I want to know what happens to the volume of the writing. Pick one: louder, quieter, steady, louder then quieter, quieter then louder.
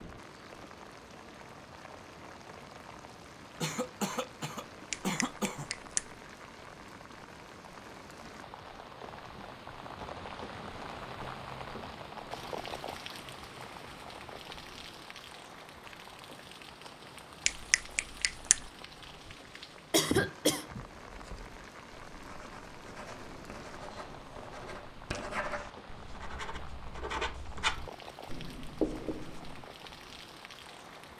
louder.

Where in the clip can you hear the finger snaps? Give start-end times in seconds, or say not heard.
4.9-6.2, 17.4-18.7.